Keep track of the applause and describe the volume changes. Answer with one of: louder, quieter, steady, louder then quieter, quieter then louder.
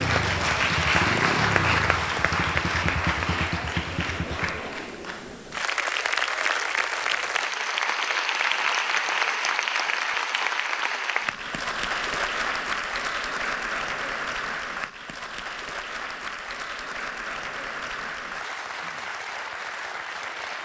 quieter.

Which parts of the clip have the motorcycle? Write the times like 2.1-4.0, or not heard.
0.0-4.7.